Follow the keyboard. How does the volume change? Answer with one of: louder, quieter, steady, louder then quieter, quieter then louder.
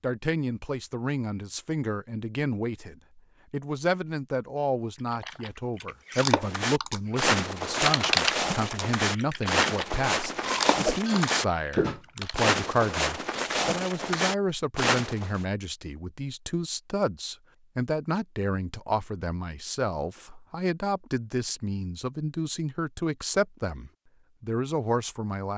quieter.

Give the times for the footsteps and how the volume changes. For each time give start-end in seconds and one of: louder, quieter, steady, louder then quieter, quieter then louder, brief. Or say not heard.
6.4-15.4 steady.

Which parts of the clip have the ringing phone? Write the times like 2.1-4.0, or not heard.
10.4-11.3.